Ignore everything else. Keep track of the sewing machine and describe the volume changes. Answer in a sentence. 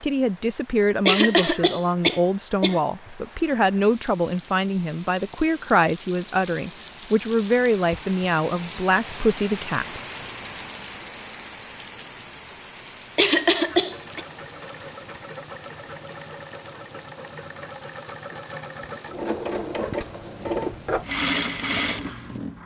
The volume of the sewing machine goes up.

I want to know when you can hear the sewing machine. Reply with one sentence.
You can hear the sewing machine from 13.7 to 22.6 s.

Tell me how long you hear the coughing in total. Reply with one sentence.
The coughing can be heard for 3 seconds in total.